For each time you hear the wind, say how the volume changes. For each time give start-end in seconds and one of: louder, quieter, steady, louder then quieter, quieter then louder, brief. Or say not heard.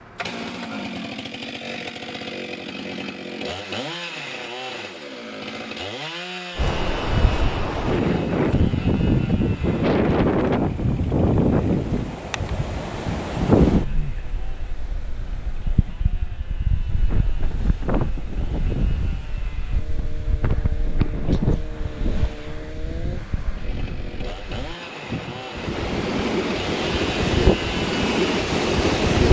6.5-29.2 quieter then louder.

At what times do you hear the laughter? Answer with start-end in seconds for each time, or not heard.
not heard.